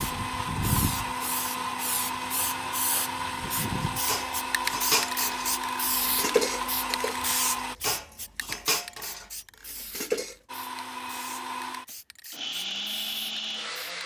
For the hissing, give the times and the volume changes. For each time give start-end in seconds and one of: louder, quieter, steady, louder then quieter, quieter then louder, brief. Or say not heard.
0.0-14.0 quieter.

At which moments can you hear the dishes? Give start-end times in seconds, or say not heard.
3.8-10.3.